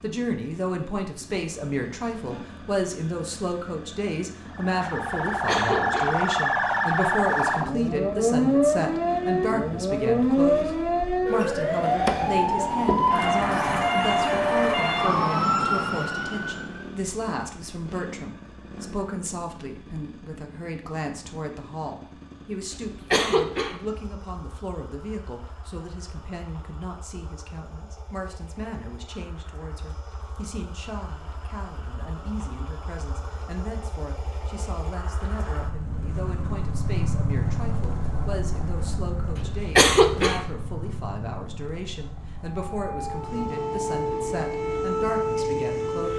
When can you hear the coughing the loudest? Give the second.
40 s.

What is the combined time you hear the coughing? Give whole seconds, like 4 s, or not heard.
3 s.